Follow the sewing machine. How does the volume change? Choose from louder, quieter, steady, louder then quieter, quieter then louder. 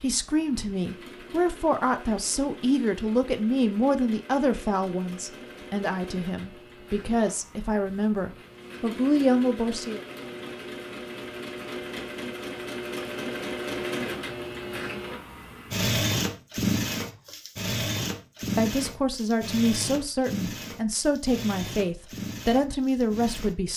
louder then quieter.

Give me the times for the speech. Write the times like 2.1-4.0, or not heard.
0.0-10.0, 18.6-23.7.